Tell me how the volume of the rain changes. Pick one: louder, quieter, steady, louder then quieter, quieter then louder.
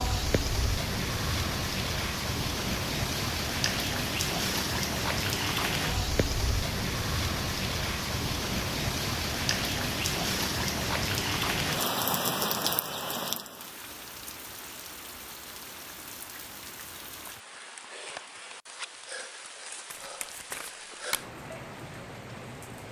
quieter.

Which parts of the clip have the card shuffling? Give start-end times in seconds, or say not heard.
19.9-21.4.